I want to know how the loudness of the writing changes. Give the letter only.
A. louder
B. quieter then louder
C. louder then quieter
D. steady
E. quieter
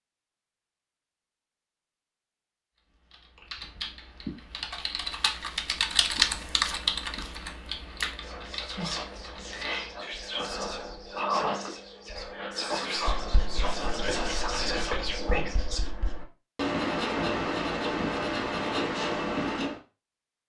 A.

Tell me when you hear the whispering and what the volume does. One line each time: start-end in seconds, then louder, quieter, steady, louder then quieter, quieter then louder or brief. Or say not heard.
8.2-15.8 louder.